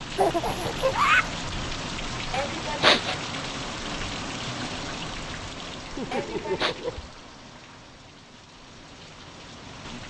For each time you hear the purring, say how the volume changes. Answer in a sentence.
The purring can't be heard in this clip.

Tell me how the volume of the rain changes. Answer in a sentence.
The loudness of the rain goes down.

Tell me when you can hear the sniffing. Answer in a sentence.
You can hear the sniffing from 2.3 to 3.1 s and from 6.1 to 6.8 s.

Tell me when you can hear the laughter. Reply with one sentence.
You can hear the laughter from 0.1 to 1.3 s and from 5.9 to 7.0 s.